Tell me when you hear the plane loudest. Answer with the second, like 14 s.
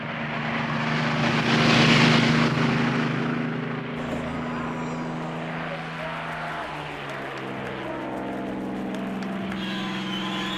2 s.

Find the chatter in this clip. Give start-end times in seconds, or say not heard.
4.0-10.5.